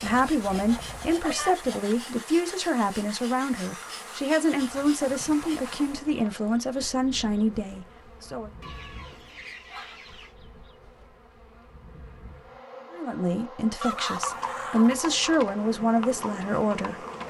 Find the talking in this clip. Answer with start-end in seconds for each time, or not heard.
0.0-8.5, 12.9-17.2.